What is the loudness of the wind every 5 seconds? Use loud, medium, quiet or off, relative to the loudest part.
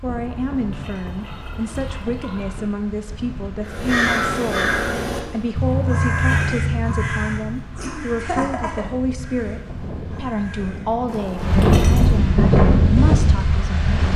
quiet, quiet, loud.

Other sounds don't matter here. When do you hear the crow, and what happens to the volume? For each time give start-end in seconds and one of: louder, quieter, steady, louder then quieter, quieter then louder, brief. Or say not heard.
3.6-10.9 quieter.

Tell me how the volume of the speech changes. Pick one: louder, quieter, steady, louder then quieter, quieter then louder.
steady.